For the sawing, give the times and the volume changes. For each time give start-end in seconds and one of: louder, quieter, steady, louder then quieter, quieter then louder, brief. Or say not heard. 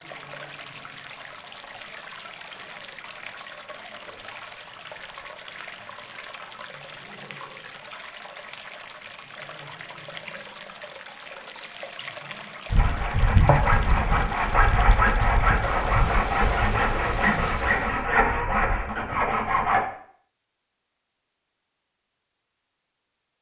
12.7-19.9 steady.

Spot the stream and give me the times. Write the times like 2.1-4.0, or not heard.
0.0-18.1.